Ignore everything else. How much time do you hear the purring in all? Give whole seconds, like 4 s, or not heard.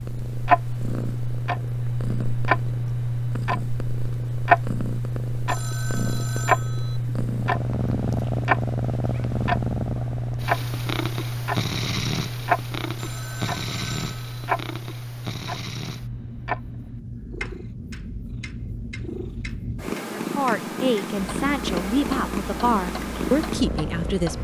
24 s.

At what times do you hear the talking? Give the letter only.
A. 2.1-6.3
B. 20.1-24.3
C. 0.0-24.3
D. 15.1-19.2
B.